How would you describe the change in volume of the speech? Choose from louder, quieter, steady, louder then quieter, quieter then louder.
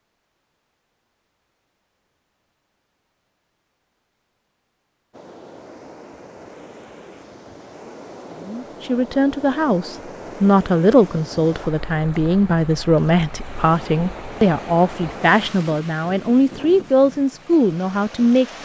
steady.